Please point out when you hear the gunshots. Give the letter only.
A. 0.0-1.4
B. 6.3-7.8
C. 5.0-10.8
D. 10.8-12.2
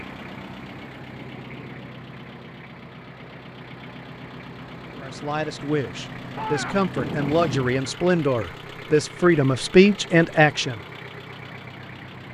B.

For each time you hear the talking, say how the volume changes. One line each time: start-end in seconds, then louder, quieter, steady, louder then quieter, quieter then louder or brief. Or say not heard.
5.0-10.8 louder.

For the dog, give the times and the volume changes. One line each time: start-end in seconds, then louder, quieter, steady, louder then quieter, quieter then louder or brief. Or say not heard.
not heard.